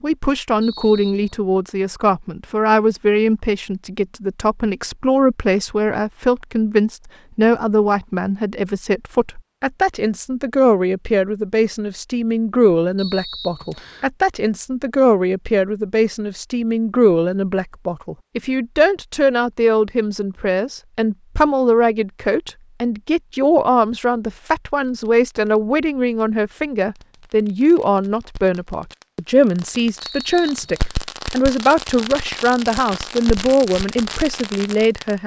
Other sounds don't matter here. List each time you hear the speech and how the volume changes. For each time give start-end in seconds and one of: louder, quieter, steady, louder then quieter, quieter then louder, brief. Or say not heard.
0.0-35.2 steady.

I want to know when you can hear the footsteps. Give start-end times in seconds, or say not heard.
not heard.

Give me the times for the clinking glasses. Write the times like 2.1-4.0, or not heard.
not heard.